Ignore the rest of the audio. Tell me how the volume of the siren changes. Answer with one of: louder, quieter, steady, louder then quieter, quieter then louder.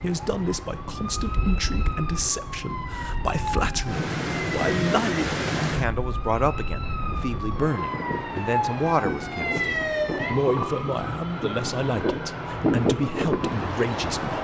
louder then quieter.